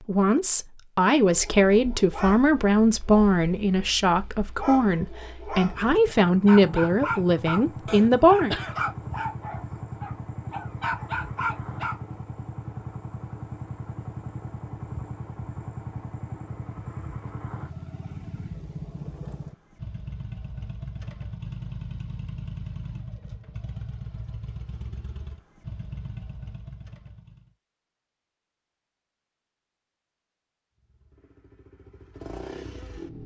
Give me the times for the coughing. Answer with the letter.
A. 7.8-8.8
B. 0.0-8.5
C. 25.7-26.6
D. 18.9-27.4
A.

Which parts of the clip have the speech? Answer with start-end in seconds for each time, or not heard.
0.0-8.5.